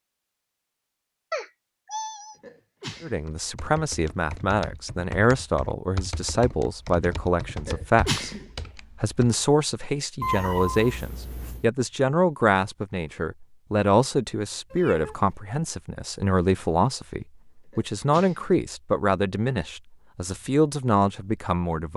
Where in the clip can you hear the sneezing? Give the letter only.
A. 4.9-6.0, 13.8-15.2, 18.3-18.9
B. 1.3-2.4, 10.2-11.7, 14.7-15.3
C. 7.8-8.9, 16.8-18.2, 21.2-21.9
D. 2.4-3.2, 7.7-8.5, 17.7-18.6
D.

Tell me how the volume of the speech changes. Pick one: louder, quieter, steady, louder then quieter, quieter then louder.
steady.